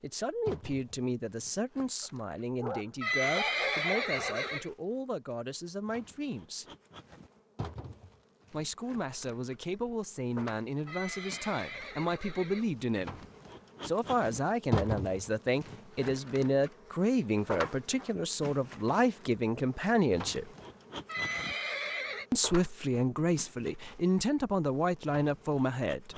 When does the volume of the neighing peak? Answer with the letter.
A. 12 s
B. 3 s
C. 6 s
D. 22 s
B.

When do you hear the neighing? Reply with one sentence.
You can hear the neighing from 3.0 to 4.7 s, from 10.8 to 12.8 s and from 21.1 to 22.2 s.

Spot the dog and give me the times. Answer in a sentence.
You can hear the dog from 1.8 to 4.5 s.